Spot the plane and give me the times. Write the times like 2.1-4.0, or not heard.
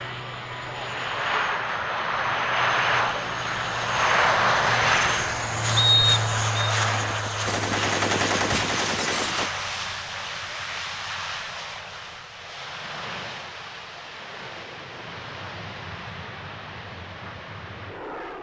0.0-18.3.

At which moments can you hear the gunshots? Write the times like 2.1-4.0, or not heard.
7.5-9.5.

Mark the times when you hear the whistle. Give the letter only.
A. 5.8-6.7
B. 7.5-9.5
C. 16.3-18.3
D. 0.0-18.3
A.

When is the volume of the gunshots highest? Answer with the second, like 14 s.
8 s.